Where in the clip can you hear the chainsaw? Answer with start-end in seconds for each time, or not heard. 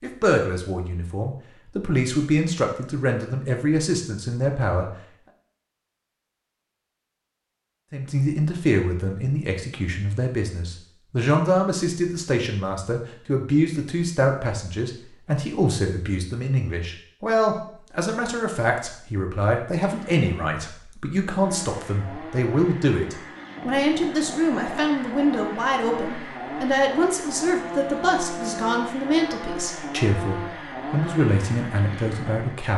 19.8-32.7.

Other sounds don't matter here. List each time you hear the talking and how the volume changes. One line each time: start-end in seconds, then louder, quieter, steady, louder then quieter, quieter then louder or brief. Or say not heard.
0.0-4.9 louder
7.9-32.7 steady.